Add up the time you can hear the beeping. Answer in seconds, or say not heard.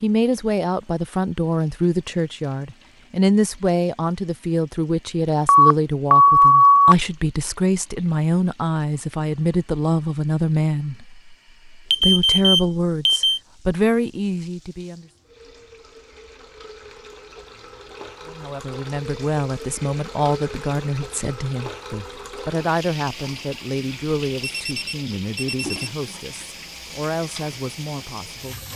4 s.